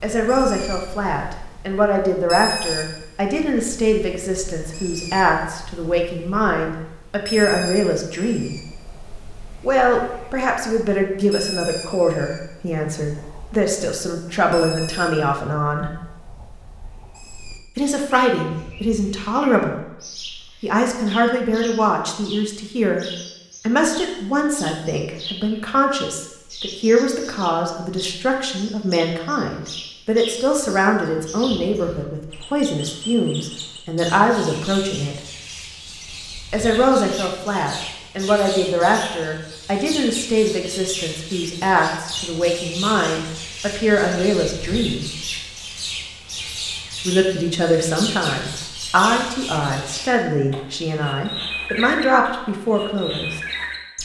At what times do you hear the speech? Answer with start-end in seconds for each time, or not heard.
0.0-8.6, 9.6-15.9, 17.8-23.1, 23.6-35.1, 36.5-45.1, 47.0-53.4.